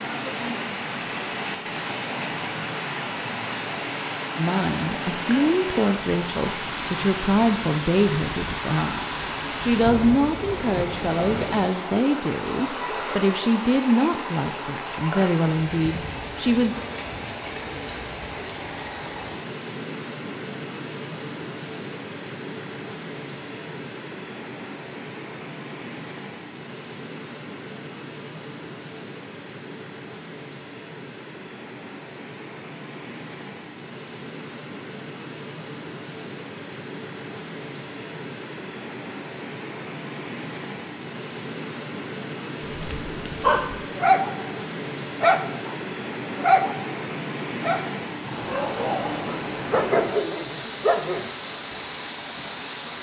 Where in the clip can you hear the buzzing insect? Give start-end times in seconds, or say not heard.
not heard.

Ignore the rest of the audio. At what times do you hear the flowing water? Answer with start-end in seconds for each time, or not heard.
0.0-52.9.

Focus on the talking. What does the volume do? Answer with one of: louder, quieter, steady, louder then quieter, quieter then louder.
steady.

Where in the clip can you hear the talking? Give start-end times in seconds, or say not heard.
4.3-16.9.